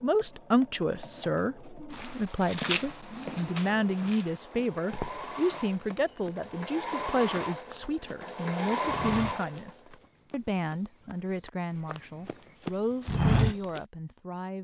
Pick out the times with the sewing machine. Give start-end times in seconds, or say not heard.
0.0-9.8.